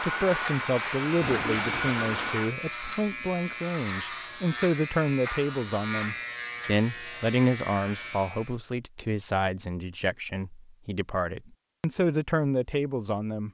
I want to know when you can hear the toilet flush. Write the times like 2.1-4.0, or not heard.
1.2-2.5.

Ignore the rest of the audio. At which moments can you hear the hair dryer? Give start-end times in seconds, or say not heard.
0.0-2.5.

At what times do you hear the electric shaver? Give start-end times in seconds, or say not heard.
0.0-8.6.